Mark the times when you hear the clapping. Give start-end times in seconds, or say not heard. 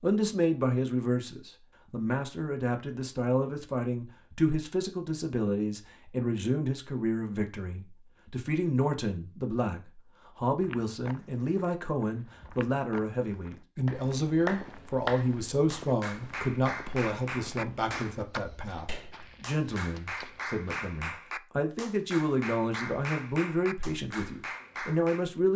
13.8-25.3.